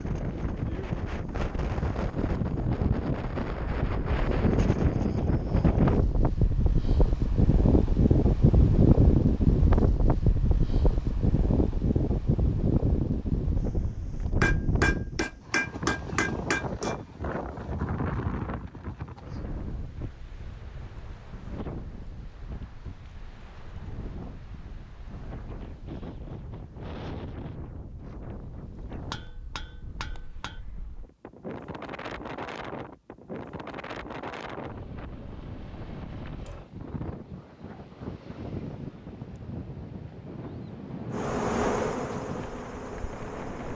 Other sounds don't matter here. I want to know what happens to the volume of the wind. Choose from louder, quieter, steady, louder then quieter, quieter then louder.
quieter.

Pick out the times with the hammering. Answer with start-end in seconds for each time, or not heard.
14.4-16.9, 29.1-30.6.